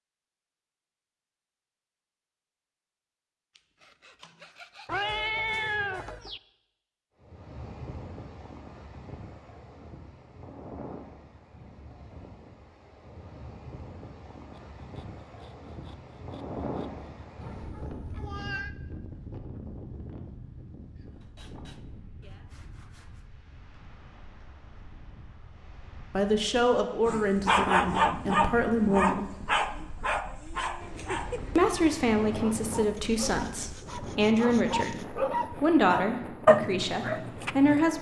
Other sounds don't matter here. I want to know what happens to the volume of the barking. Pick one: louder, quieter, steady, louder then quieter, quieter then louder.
quieter then louder.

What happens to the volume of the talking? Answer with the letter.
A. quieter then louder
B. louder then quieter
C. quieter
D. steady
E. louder
D.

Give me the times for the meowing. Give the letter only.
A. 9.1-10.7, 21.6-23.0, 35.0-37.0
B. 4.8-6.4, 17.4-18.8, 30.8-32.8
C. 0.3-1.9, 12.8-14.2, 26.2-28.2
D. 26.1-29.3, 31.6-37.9
B.